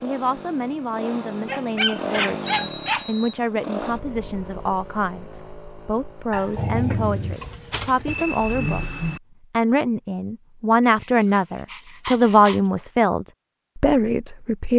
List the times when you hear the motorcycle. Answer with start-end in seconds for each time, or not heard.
0.0-6.5.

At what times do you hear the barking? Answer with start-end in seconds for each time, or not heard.
1.4-3.0, 6.3-8.2, 10.8-12.6.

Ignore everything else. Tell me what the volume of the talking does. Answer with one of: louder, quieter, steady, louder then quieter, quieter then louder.
louder.